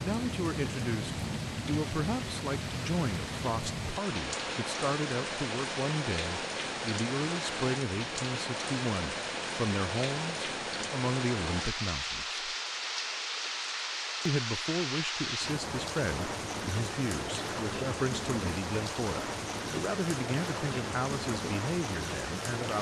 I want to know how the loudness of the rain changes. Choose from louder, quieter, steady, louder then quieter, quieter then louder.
steady.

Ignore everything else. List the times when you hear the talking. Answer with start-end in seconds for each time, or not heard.
0.0-12.4, 14.2-22.7.